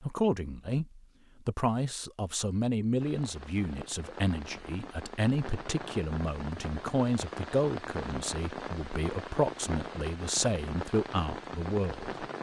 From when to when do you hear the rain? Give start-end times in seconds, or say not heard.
3.0-12.3.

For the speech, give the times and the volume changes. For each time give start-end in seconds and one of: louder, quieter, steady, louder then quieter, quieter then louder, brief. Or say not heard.
0.0-12.2 steady.